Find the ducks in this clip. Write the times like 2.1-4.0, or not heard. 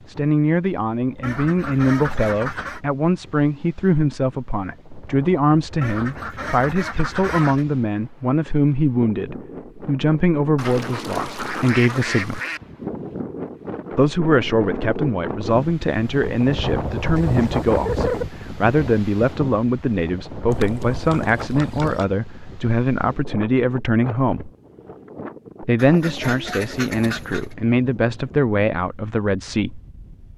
1.2-2.8, 5.8-7.7, 10.6-12.6, 17.1-18.2, 20.5-22.1, 25.8-27.6.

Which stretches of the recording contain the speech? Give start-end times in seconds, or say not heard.
0.1-12.4, 13.9-24.5, 25.6-29.8.